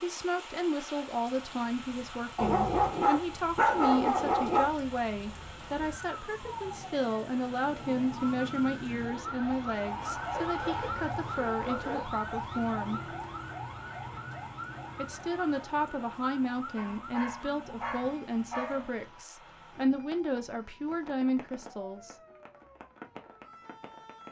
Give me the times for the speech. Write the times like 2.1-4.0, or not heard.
0.0-13.0, 14.9-22.1.